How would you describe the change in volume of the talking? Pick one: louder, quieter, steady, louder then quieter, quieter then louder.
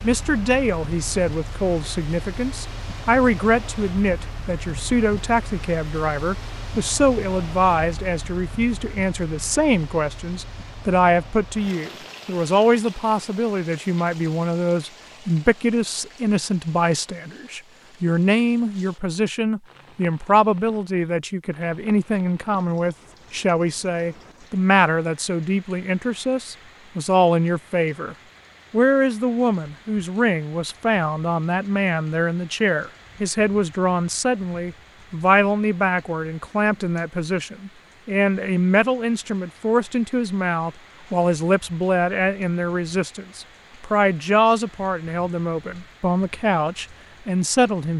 steady.